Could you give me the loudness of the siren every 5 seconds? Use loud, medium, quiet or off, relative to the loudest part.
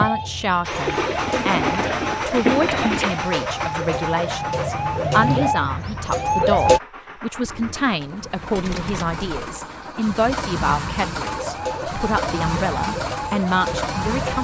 medium, loud, medium.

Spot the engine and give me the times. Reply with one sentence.
You can hear the engine from 0.0 to 14.3 s.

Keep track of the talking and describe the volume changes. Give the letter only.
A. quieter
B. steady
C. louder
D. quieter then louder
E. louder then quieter
B.